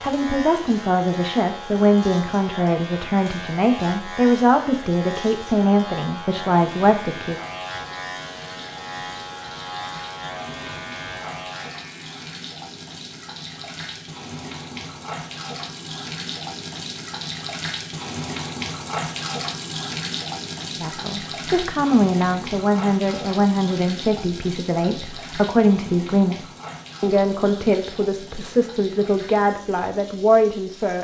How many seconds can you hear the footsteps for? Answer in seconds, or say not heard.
not heard.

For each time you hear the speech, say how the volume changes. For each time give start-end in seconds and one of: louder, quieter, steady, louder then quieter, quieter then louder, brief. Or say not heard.
0.0-7.4 steady
20.8-30.9 steady.